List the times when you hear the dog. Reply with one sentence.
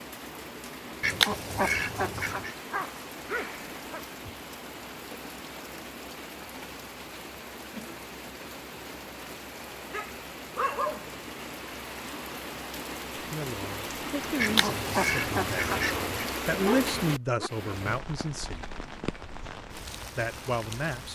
The dog can be heard from 2.1 to 4.0 s, from 9.9 to 11.3 s and from 15.9 to 17.5 s.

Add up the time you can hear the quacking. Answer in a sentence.
The quacking can be heard for 3 seconds in total.